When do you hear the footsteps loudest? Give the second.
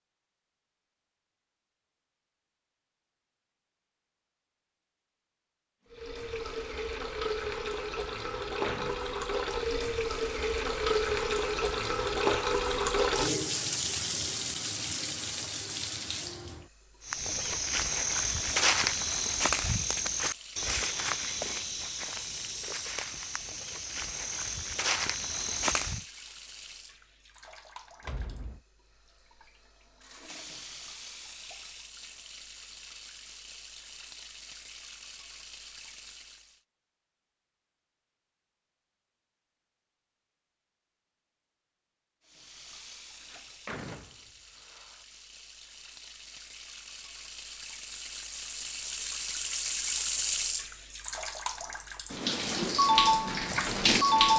19 s.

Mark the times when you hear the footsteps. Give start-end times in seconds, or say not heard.
17.1-26.1.